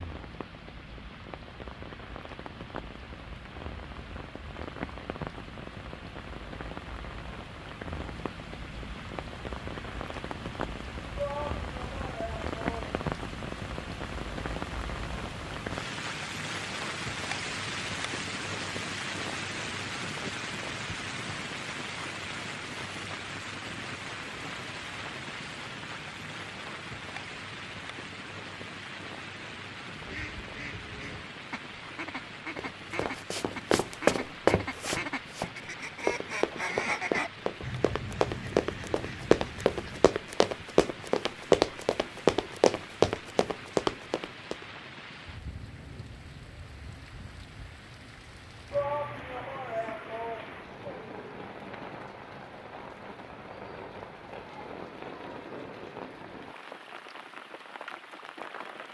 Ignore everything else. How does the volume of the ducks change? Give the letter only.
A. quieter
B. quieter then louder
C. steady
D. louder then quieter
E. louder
D.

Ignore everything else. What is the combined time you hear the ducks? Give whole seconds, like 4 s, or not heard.
10 s.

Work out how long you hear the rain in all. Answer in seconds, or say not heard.
59 s.